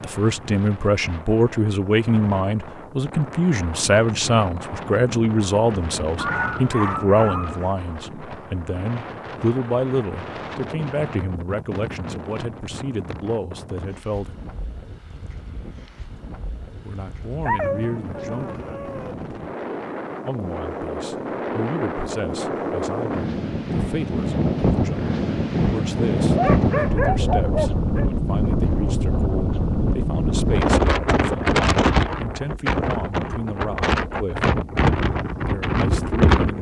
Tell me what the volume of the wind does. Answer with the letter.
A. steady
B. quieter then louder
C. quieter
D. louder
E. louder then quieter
D.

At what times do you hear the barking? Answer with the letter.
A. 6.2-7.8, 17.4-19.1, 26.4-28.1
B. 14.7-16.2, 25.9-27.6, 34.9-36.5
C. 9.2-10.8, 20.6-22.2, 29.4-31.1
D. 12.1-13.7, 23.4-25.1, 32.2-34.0
A.